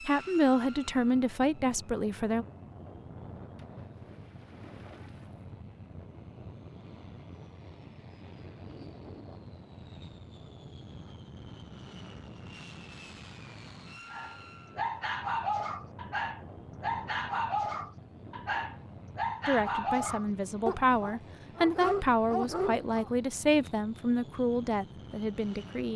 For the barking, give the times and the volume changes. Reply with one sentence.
The barking can be heard from 14.1 to 23.1 s, at a steady volume.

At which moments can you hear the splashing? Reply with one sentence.
You can hear the splashing from 3.5 to 5.5 s.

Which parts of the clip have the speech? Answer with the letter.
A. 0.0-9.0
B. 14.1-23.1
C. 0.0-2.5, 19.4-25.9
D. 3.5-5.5
C.